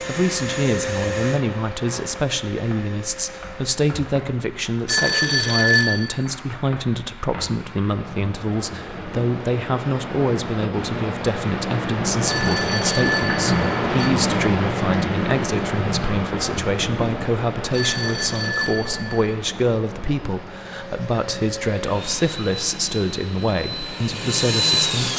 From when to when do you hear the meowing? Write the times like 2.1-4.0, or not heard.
not heard.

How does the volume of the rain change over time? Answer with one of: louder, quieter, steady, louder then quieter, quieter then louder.
louder then quieter.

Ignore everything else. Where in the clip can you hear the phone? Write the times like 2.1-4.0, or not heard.
4.8-6.1, 12.2-14.1, 17.7-19.3.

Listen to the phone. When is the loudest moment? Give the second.
6 s.